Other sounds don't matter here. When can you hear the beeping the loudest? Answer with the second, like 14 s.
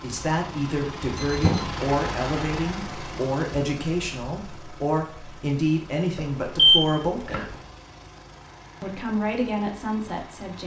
7 s.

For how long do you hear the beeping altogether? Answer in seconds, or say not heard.
2 s.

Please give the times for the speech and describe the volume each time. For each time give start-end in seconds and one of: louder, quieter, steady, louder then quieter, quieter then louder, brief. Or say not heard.
0.0-7.3 steady
8.8-10.6 brief.